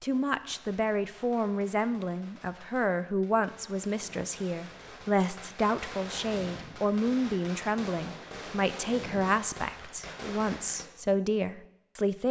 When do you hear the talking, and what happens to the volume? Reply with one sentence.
The talking can be heard from 0.0 to 12.2 s, at a steady volume.